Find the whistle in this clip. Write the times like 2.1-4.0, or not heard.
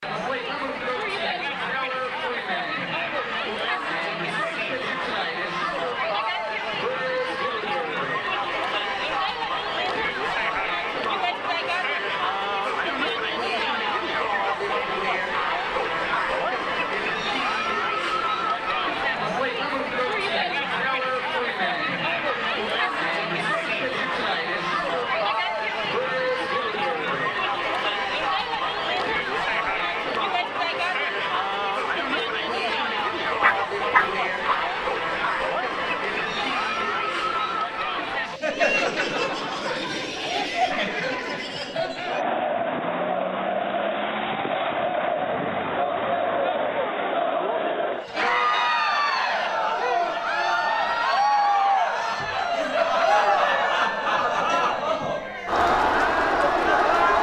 not heard.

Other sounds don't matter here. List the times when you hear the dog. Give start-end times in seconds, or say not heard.
33.4-34.6.